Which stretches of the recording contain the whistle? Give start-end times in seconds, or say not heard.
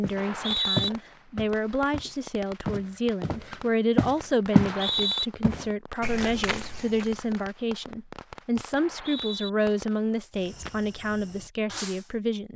0.1-0.9, 4.5-5.2, 8.8-9.5.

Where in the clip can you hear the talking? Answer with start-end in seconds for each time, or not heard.
0.0-12.5.